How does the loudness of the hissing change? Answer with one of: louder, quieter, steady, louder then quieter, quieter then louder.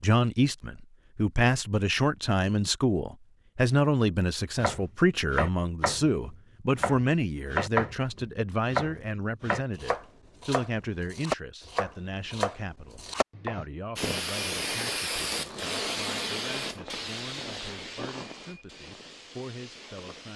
quieter.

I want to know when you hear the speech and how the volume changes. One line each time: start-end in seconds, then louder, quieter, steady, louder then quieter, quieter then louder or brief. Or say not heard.
0.0-20.3 quieter.